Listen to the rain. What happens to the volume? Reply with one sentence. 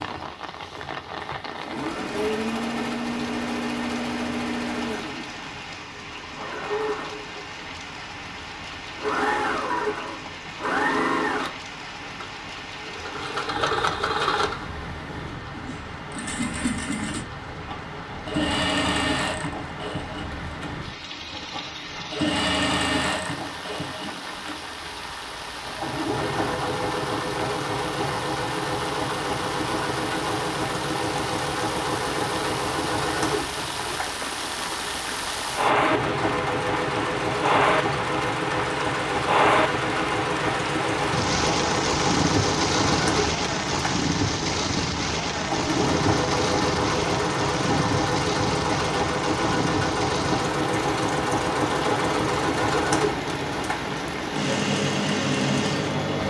The loudness of the rain goes up.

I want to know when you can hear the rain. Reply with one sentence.
The rain can be heard from 0.0 to 56.2 s.